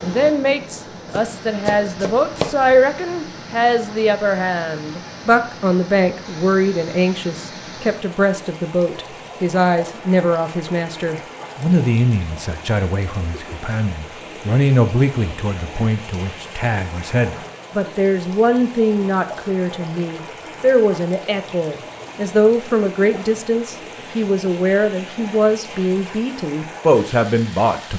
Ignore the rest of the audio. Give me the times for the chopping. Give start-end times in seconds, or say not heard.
1.1-2.7.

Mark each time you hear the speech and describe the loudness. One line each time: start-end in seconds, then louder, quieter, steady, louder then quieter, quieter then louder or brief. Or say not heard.
0.0-27.9 steady.